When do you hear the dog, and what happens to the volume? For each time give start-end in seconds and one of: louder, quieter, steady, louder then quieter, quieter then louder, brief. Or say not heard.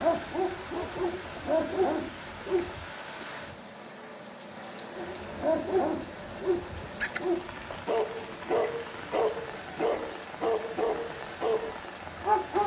0.0-2.9 brief
5.0-12.6 steady.